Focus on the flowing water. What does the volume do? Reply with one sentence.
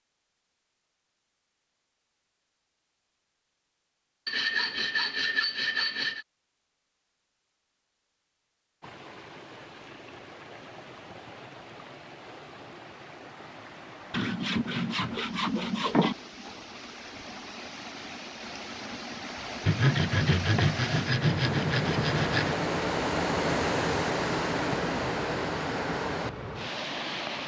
The volume of the flowing water goes up.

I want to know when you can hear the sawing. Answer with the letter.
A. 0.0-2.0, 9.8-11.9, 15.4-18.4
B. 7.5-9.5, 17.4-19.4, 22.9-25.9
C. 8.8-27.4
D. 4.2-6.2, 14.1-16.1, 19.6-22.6
D.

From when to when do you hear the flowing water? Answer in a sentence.
You can hear the flowing water from 8.8 to 27.4 s.